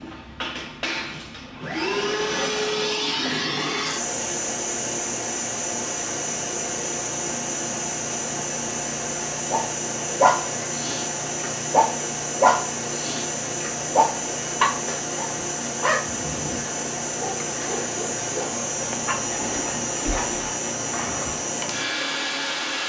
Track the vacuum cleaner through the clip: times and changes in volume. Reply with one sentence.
The vacuum cleaner can be heard from 0.0 to 22.8 s, at a steady volume.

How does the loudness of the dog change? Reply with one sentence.
The volume of the dog goes down.